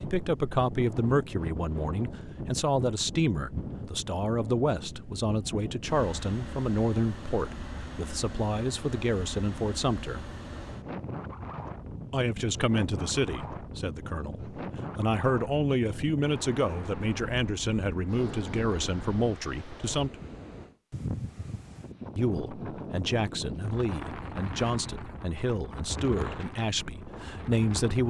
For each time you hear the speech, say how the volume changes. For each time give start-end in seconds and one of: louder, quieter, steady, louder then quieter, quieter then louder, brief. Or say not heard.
0.0-10.3 steady
12.1-20.1 steady
22.1-28.0 steady.